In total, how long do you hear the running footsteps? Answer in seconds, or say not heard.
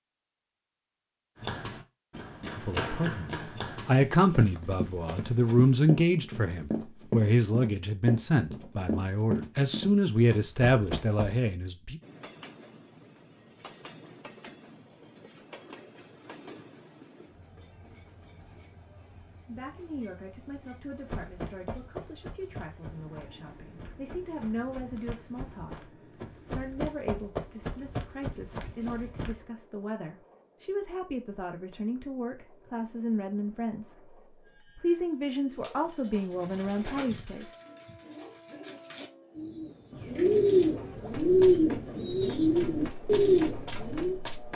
22 s.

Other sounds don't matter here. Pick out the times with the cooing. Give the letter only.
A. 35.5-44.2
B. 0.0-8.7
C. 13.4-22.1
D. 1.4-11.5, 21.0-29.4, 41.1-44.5
A.